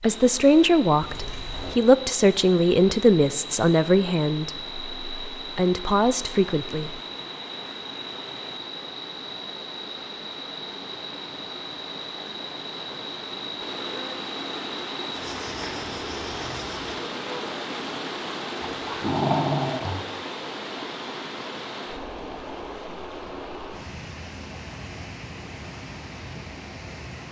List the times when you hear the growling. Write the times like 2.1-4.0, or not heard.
18.8-20.1.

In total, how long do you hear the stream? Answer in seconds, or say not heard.
27 s.